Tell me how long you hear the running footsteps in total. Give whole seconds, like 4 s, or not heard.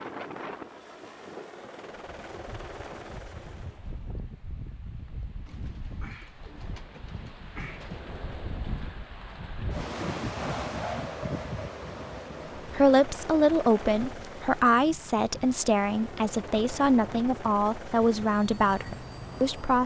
not heard.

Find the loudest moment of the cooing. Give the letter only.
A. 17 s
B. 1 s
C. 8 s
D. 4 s
C.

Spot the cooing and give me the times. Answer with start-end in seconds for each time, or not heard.
5.5-8.2.